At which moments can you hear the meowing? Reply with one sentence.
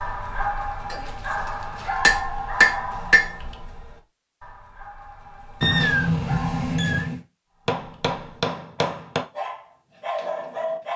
You can hear the meowing from 5.6 to 7.2 s.